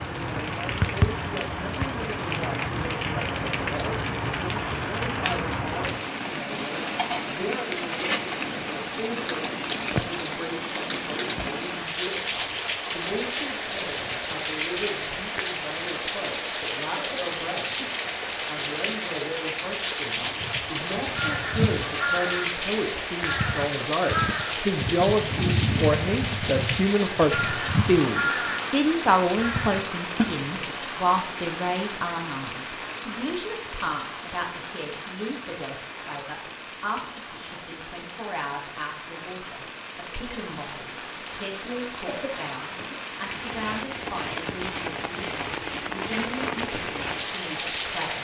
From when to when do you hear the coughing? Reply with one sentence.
The coughing can be heard from 16.9 to 17.9 s and from 42.0 to 43.0 s.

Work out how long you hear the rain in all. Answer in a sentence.
The rain can be heard for 48 seconds in total.